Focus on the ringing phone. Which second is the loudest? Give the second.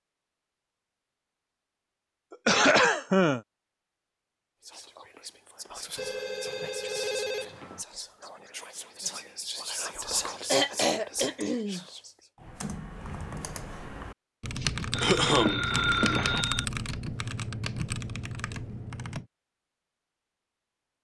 16 s.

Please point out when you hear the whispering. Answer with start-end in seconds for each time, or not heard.
4.6-12.3.